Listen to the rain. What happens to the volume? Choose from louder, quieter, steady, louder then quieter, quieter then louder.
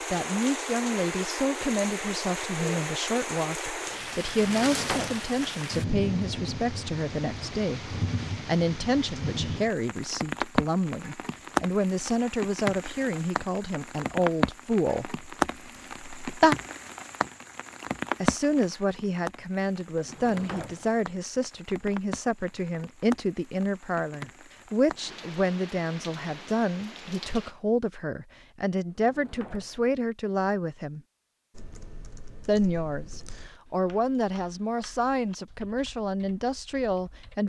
quieter.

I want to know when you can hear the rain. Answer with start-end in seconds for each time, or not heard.
0.0-27.6.